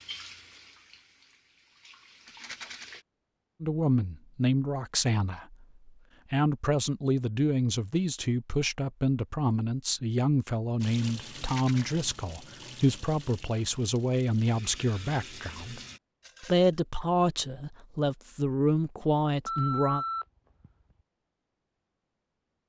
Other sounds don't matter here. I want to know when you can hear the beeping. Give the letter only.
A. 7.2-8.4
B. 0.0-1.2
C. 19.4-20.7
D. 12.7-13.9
C.